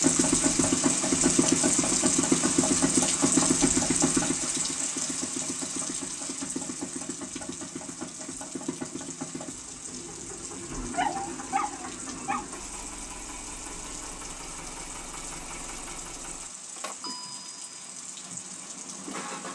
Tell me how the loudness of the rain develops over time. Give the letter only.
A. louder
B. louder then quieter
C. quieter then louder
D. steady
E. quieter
E.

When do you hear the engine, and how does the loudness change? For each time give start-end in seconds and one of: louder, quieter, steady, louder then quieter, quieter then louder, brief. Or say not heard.
0.0-19.5 quieter.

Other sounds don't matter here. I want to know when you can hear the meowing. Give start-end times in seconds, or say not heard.
not heard.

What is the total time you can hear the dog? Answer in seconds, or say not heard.
2 s.